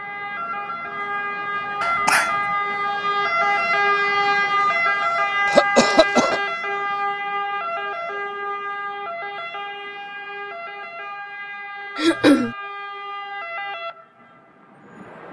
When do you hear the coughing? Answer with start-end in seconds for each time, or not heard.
1.8-2.4, 5.5-6.4, 11.9-12.6.